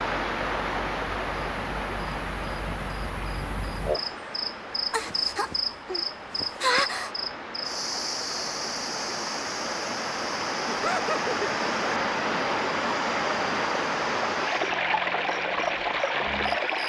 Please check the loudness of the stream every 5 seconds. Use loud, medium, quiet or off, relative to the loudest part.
medium, medium, loud, loud.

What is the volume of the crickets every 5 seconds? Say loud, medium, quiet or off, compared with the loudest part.
medium, loud, medium, quiet.